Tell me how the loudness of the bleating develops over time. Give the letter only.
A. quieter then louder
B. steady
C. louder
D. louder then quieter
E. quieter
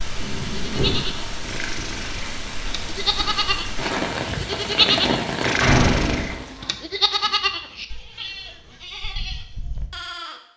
D.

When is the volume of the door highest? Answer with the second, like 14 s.
6 s.